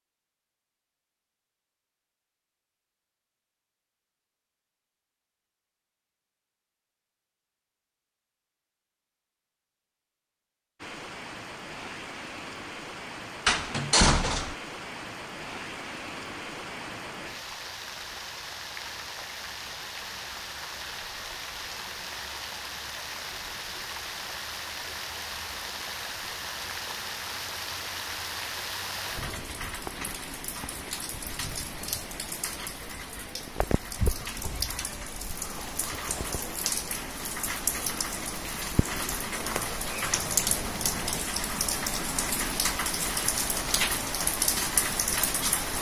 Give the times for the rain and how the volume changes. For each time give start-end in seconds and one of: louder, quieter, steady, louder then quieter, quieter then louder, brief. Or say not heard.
10.8-45.7 louder.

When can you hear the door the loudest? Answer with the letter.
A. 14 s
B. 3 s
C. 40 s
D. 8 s
A.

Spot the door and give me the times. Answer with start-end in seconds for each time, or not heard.
13.4-14.6, 39.3-41.2.